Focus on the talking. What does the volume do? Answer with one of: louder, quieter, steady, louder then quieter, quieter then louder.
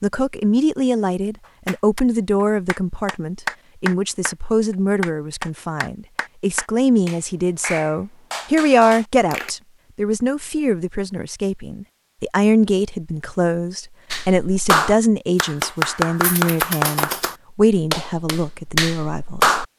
steady.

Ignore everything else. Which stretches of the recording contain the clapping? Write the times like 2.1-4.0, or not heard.
1.6-9.6, 14.1-19.6.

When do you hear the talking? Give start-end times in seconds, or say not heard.
0.0-19.6.